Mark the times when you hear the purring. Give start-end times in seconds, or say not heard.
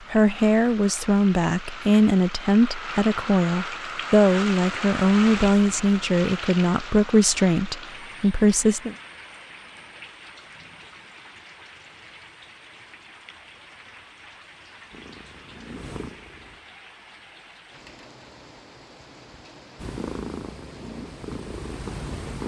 14.9-16.6, 19.8-22.4.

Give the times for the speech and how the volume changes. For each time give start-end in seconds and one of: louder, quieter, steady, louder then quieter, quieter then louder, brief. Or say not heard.
0.1-8.9 steady.